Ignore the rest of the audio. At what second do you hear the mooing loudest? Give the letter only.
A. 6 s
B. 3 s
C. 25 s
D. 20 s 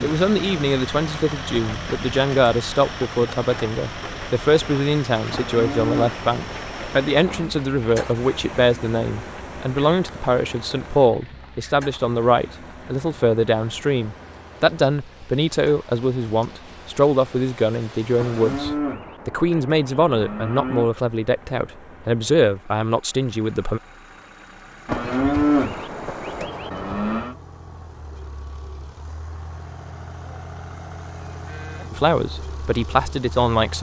C.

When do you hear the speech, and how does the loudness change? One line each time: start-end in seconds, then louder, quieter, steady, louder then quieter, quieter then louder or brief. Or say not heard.
0.0-23.8 steady
31.9-33.7 brief.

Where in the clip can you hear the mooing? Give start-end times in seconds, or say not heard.
5.3-7.5, 18.1-20.9, 24.9-27.4.